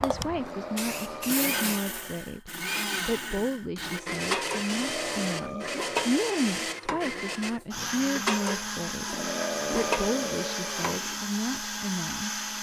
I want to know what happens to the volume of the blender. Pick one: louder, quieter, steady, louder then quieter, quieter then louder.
steady.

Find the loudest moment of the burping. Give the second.
10 s.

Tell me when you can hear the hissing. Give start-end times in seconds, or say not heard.
0.0-1.8.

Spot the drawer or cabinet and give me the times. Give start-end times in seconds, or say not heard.
not heard.